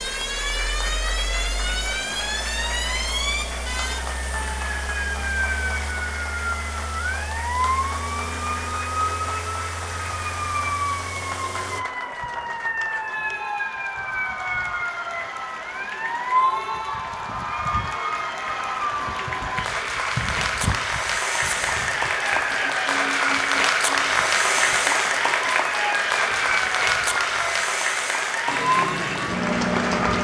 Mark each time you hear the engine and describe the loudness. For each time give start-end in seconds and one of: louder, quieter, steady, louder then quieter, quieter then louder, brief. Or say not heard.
0.0-11.8 steady
28.4-30.1 brief.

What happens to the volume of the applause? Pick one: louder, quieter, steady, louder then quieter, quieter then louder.
louder.